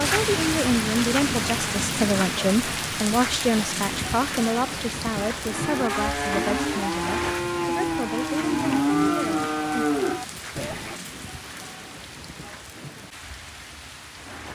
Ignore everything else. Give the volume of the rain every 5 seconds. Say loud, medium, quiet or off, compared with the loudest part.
loud, medium, quiet.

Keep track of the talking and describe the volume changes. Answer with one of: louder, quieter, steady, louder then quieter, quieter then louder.
quieter.